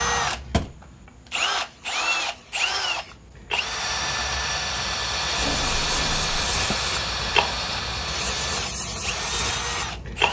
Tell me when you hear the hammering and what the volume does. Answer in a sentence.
The hammering can't be heard in this clip.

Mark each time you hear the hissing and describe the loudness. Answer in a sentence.
You can hear the hissing from 0.0 to 10.2 s, getting louder.